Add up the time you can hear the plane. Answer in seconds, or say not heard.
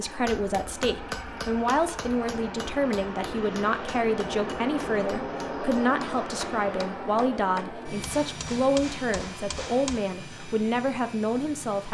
12 s.